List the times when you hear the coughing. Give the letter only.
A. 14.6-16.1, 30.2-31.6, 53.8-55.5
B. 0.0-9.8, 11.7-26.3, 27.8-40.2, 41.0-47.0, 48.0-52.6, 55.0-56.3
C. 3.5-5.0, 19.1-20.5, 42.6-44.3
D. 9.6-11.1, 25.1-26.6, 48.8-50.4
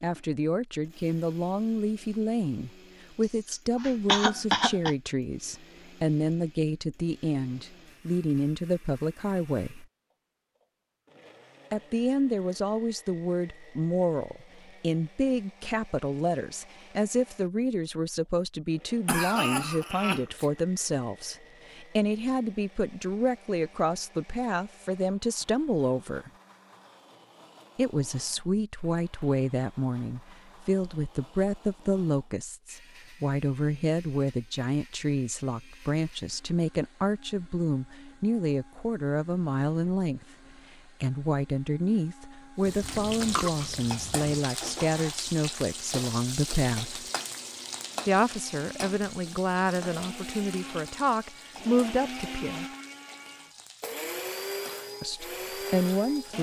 C.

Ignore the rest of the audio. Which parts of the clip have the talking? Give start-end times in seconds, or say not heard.
0.0-9.8, 11.7-26.3, 27.8-40.2, 41.0-47.0, 48.0-52.6, 55.0-56.3.